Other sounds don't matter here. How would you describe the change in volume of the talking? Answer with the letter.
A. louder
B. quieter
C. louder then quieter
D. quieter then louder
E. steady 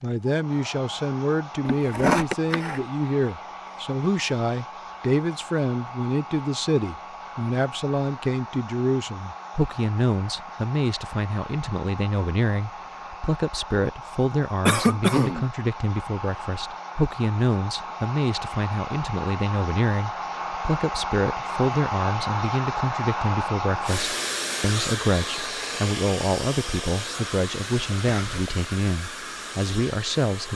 E.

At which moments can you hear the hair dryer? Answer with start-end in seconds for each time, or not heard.
0.0-30.5.